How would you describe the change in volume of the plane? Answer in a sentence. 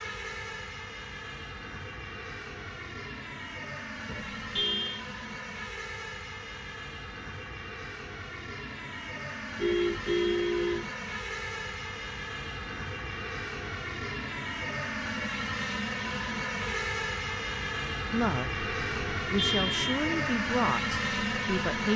The volume of the plane goes up.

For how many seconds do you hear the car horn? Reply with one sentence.
The car horn can be heard for 3 seconds in total.